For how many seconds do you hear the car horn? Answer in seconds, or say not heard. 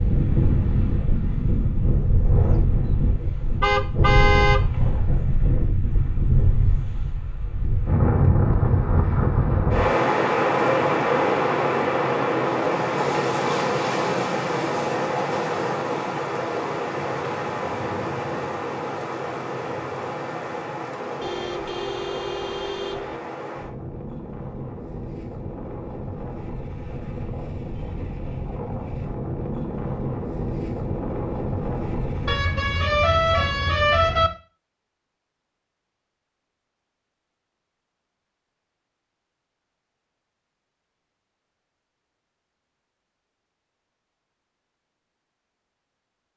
5 s.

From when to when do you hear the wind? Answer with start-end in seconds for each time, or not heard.
0.0-32.4.